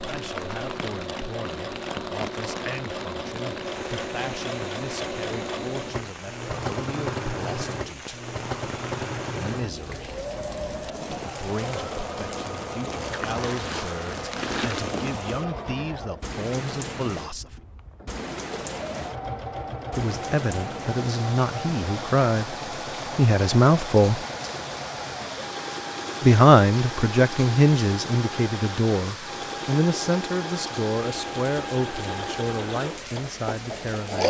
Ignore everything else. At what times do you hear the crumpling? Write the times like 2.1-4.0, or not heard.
13.1-15.1.